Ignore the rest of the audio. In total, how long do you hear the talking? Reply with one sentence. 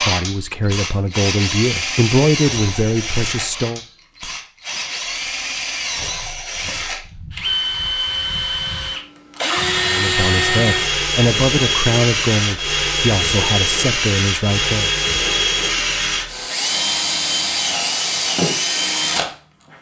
The talking can be heard for 9 seconds in total.